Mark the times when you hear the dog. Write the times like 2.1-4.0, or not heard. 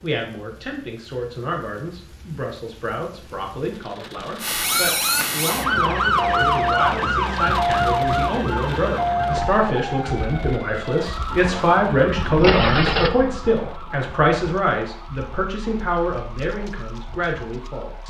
not heard.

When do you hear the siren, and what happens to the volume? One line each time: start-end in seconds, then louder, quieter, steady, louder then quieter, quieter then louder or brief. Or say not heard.
4.4-18.0 quieter.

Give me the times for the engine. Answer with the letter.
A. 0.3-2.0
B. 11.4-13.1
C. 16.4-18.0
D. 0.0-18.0
B.